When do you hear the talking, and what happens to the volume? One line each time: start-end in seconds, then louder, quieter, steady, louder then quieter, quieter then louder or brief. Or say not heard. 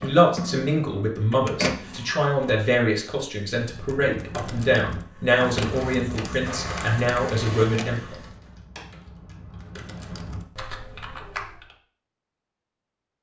0.0-8.2 steady.